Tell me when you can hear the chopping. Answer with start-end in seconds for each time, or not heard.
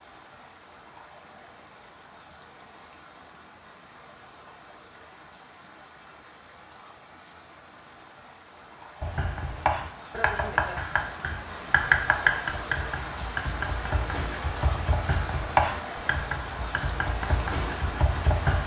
9.0-18.6.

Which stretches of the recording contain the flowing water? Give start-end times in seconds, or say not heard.
0.0-18.6.